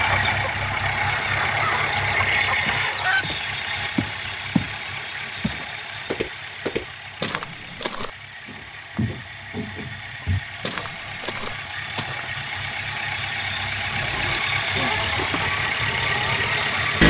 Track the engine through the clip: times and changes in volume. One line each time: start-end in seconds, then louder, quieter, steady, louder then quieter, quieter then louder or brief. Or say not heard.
0.0-17.0 quieter then louder.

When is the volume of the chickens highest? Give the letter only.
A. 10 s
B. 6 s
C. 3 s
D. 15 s
C.